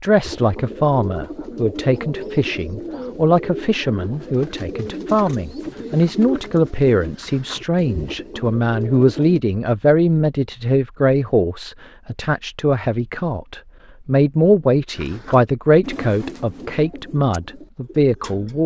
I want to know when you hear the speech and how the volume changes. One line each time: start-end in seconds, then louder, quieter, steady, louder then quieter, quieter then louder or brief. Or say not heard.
0.0-18.6 steady.